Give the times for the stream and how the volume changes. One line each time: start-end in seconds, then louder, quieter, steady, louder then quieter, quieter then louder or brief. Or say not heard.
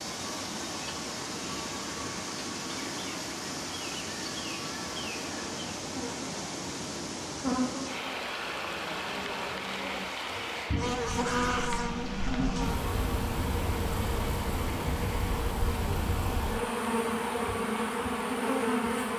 0.0-19.1 quieter.